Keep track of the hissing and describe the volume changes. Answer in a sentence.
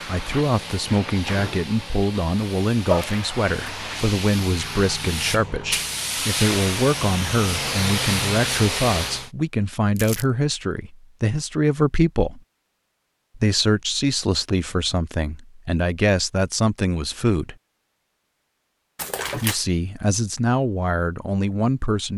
The loudness of the hissing goes up.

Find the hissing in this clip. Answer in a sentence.
You can hear the hissing from 0.0 to 9.3 s.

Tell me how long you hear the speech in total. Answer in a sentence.
You can hear the speech for 19 seconds altogether.